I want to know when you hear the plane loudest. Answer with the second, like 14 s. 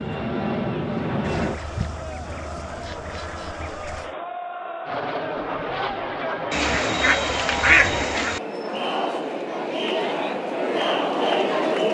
1 s.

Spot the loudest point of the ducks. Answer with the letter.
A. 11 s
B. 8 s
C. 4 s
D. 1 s
B.